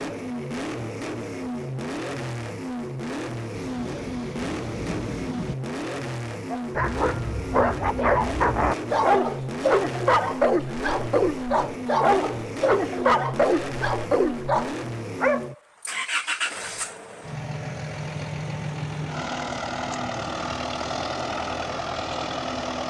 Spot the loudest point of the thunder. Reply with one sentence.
The loudest moment of the thunder is at 5 seconds.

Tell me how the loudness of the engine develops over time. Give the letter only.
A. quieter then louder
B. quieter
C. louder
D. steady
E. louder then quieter
D.